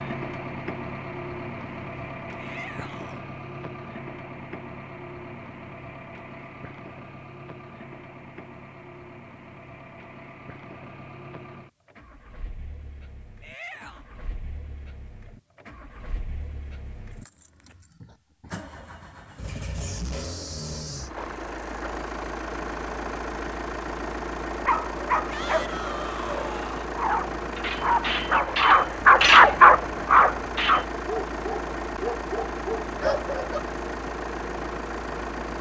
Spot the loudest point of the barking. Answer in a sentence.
The loudest moment of the barking is at 30 seconds.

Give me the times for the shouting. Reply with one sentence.
The shouting can be heard from 2.4 to 3.2 s, from 13.4 to 14.1 s and from 25.3 to 26.9 s.